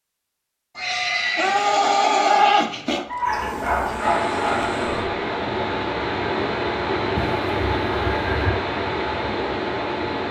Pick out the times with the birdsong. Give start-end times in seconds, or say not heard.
not heard.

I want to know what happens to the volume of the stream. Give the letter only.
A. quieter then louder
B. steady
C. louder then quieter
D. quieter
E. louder
B.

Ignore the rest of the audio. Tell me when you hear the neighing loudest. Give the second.
2 s.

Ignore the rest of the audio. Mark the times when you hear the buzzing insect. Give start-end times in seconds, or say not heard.
3.2-5.1.